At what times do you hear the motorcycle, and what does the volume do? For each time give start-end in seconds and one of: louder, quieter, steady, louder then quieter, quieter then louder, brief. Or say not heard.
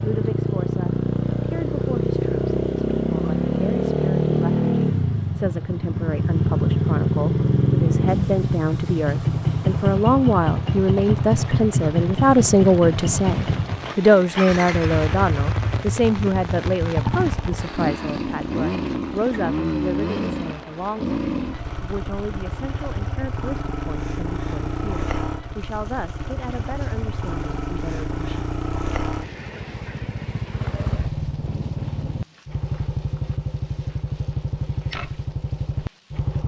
0.0-36.4 quieter.